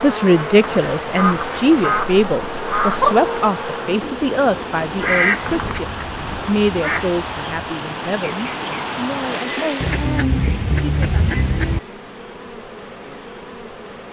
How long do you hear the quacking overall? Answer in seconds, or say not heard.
7 s.